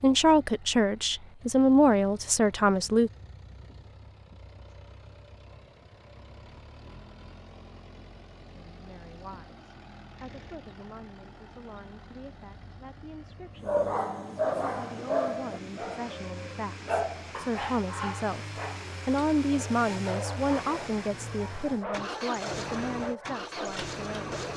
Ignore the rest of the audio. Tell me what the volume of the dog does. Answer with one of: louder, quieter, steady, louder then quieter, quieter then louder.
quieter.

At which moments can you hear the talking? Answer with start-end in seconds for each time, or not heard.
0.0-3.1, 8.6-24.4.